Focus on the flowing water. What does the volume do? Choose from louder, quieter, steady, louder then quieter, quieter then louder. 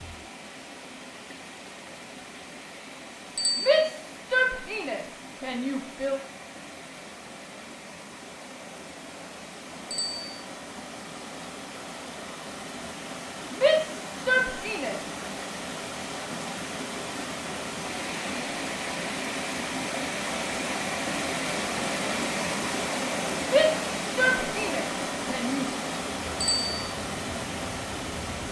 louder.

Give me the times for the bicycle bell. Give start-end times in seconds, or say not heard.
3.4-3.9, 9.9-10.4, 26.4-26.9.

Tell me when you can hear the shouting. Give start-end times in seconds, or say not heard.
3.5-6.2, 13.5-15.0, 23.4-25.6.